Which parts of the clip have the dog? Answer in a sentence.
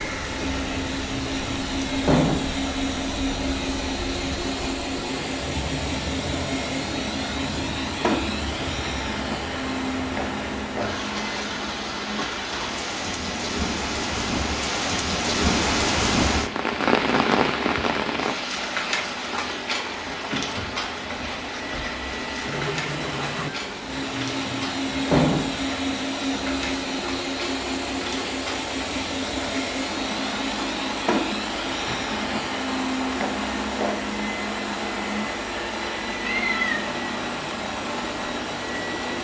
The dog can't be heard in this clip.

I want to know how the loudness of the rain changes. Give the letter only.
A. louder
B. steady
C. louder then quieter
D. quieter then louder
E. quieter
C.